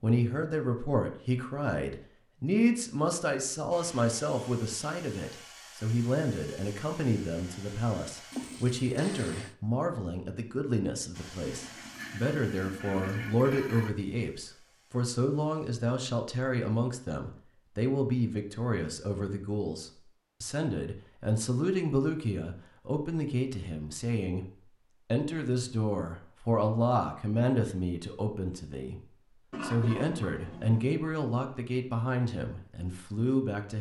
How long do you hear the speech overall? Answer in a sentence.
You can hear the speech for 33 seconds altogether.